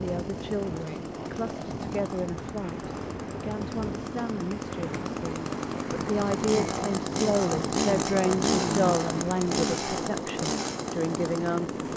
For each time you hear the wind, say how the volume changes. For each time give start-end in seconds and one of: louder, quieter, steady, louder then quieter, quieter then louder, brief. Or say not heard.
0.0-11.9 steady.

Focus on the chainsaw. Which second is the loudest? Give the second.
8 s.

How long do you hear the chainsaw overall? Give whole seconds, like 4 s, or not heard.
12 s.